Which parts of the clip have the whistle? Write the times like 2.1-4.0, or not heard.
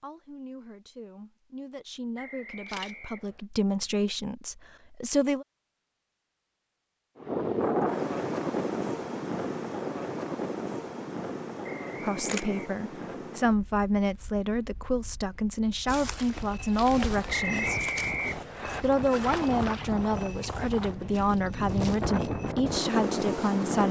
2.1-3.5, 11.6-13.2, 17.3-18.9.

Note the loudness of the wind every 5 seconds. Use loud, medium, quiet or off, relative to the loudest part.
off, loud, medium, medium, loud.